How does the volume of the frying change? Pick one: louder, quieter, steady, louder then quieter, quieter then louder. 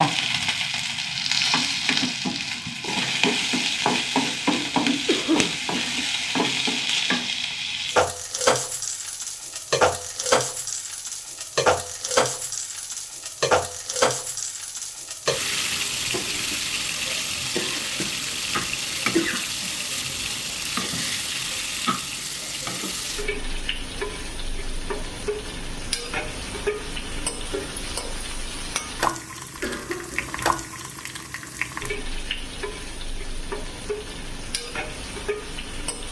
quieter.